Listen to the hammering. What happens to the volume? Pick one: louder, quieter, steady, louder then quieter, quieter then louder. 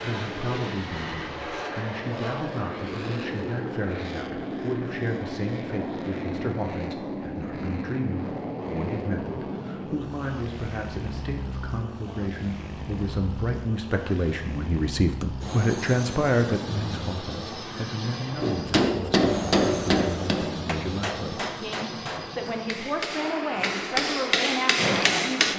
quieter then louder.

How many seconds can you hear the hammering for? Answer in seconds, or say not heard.
7 s.